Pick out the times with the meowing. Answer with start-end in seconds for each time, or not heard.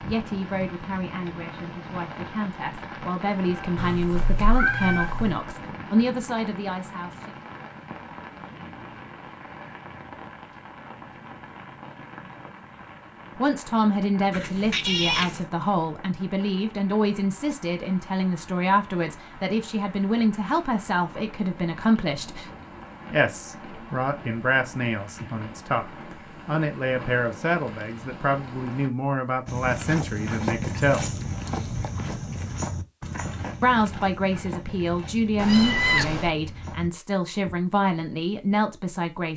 3.8-5.4, 14.3-15.4, 35.4-36.3.